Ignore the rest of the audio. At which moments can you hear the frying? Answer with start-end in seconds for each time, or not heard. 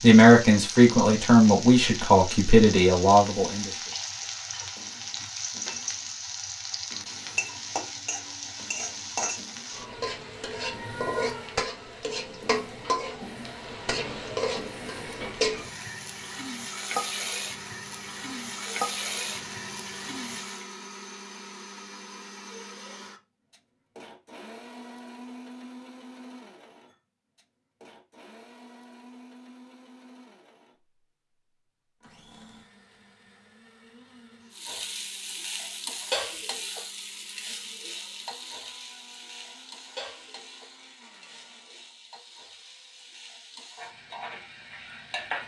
0.0-20.6, 34.5-45.4.